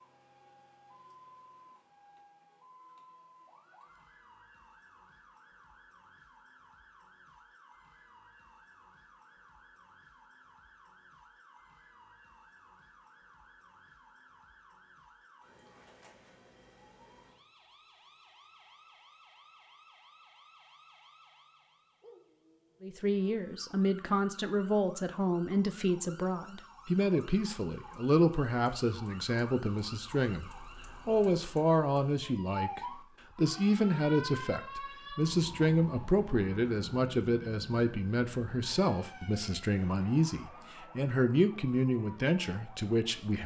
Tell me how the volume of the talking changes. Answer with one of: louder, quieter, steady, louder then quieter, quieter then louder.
steady.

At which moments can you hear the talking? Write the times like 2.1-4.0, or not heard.
22.8-43.4.